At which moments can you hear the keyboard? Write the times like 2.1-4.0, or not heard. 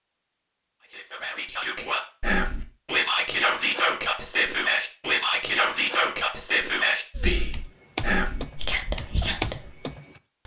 7.5-10.4.